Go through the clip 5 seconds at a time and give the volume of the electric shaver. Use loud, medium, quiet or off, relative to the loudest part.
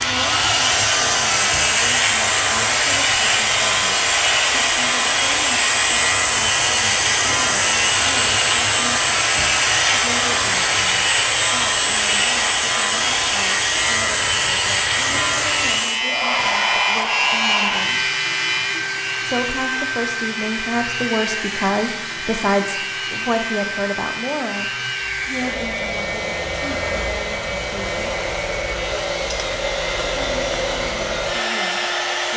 loud, loud, loud, loud, medium, medium, medium.